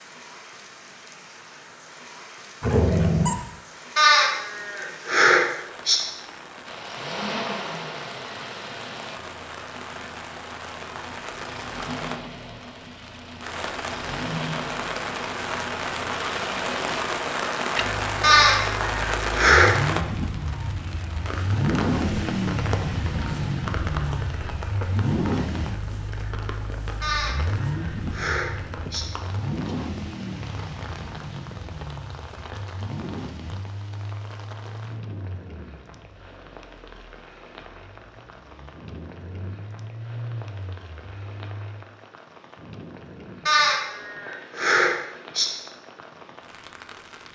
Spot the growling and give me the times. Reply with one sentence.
You can hear the growling from 2.6 to 3.4 s.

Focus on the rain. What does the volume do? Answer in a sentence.
The volume of the rain goes up, then down.